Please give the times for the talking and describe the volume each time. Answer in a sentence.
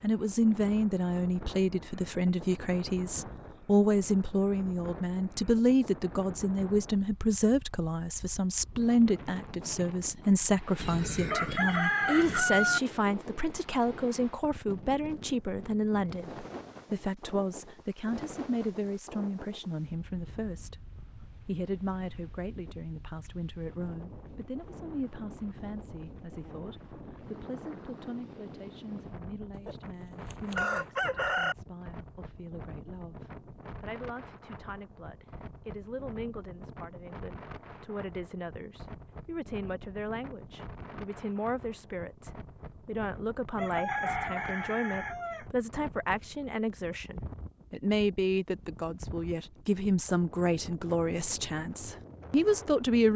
You can hear the talking from 0.0 to 53.1 s, getting quieter then louder.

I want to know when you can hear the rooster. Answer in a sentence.
You can hear the rooster from 10.8 to 12.8 s, from 29.5 to 31.6 s and from 43.5 to 45.5 s.